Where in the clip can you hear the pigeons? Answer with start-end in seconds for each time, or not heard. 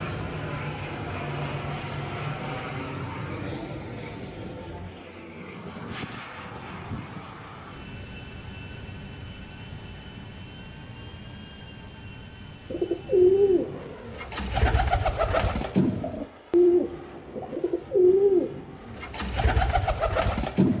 12.7-20.7.